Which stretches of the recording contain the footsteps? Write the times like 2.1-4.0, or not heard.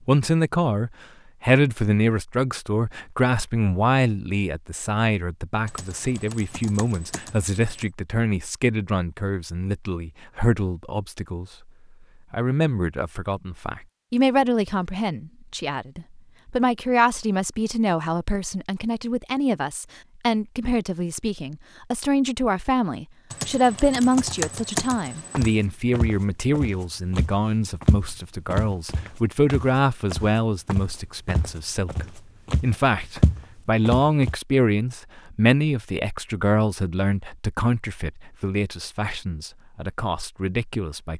25.3-34.4.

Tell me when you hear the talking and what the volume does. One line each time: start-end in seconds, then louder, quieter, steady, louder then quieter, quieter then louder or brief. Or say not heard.
0.1-11.7 quieter
12.3-41.1 steady.